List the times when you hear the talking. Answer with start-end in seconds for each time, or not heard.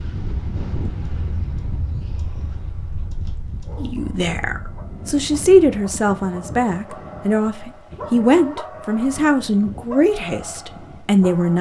3.8-11.5.